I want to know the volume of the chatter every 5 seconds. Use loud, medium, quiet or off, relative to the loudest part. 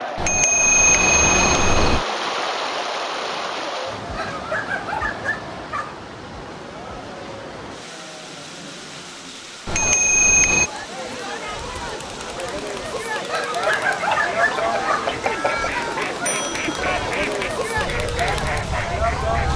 medium, quiet, loud, loud.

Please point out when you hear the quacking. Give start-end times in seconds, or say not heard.
13.6-19.5.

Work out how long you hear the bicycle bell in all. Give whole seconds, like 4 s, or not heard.
5 s.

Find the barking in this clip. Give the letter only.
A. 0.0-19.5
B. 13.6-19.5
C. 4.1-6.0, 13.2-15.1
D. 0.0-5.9
C.